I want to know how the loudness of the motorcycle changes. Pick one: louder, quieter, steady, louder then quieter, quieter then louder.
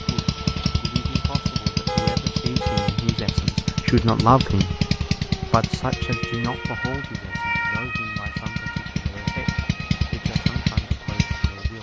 quieter then louder.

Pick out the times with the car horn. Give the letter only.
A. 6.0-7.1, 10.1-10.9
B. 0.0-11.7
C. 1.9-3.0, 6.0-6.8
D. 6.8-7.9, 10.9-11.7
C.